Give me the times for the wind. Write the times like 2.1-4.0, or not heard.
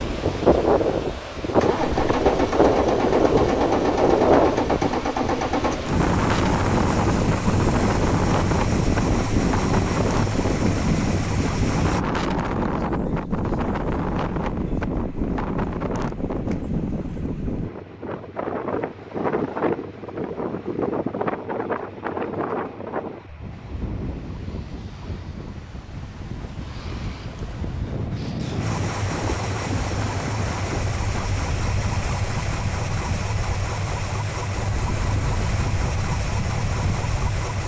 0.0-37.6.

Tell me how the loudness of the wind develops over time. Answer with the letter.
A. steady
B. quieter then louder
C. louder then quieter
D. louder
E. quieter
E.